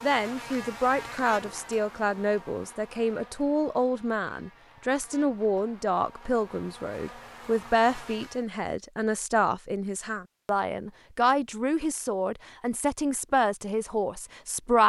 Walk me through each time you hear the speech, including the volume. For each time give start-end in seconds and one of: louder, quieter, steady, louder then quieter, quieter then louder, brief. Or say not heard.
0.0-14.8 steady.